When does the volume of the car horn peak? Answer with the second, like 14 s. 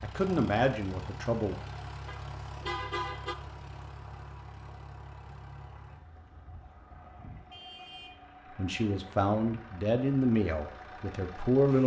3 s.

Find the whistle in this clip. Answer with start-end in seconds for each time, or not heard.
not heard.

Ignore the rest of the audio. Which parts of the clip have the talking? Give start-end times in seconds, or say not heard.
0.0-1.6, 8.6-11.8.